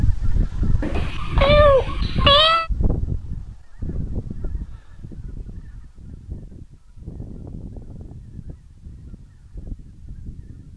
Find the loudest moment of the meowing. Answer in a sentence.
The volume of the meowing peaks at 2 seconds.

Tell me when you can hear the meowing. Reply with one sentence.
The meowing can be heard from 0.8 to 2.7 s.